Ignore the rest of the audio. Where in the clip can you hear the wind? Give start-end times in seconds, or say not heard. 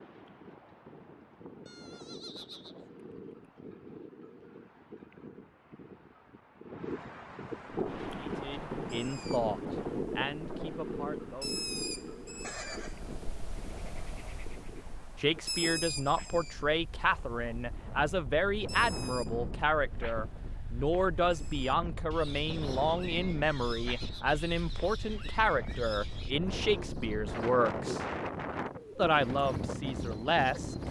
0.0-30.8.